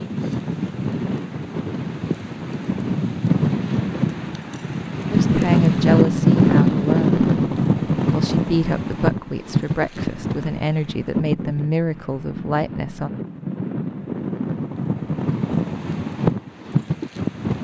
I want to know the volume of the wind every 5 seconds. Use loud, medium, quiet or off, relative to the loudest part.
medium, loud, medium, medium.